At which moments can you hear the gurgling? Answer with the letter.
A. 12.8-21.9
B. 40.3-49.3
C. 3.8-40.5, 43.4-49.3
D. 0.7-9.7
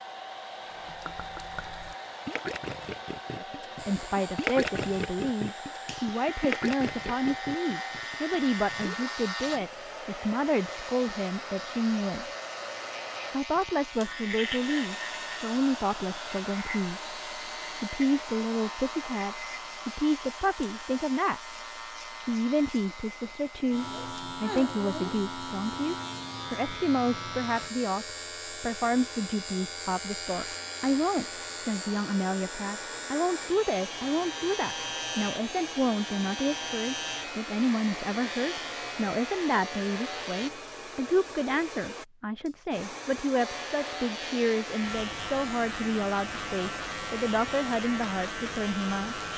D.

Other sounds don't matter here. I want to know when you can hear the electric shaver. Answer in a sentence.
You can hear the electric shaver from 3.8 to 40.5 s and from 43.4 to 49.3 s.